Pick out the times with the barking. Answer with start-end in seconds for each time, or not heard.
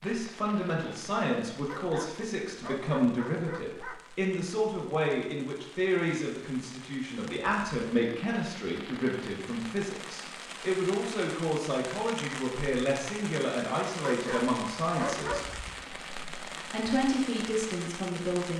1.6-4.0, 14.0-15.6.